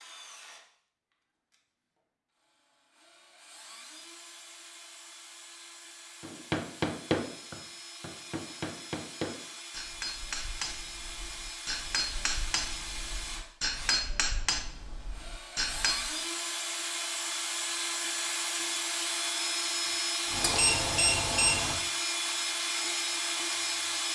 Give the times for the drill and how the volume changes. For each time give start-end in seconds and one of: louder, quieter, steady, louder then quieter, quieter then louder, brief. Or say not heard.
0.0-24.1 louder.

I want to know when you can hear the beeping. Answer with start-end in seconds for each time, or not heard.
19.9-21.8.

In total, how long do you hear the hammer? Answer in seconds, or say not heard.
10 s.